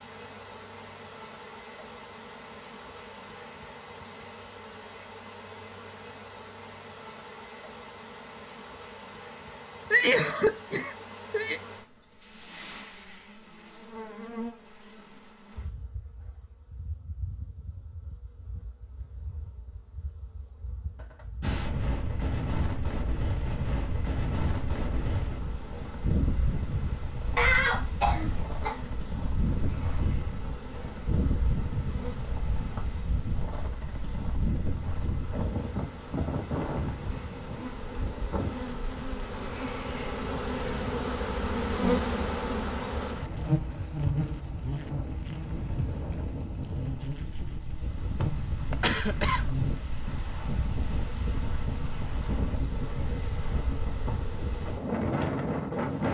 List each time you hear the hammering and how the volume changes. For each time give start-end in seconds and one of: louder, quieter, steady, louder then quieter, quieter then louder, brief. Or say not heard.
not heard.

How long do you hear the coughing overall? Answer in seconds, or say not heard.
4 s.